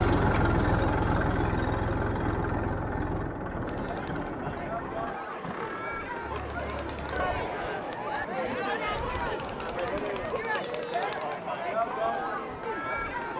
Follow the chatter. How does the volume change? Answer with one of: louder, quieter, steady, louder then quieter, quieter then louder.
louder.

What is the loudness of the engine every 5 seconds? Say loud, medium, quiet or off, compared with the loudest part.
loud, quiet, off.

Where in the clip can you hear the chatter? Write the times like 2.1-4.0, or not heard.
3.6-13.3.